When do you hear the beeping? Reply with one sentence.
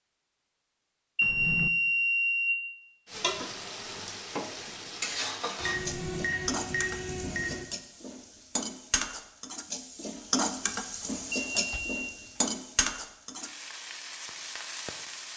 You can hear the beeping from 1.1 to 2.5 s, from 5.6 to 7.7 s and from 11.3 to 12.1 s.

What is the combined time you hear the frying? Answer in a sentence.
You can hear the frying for 12 seconds altogether.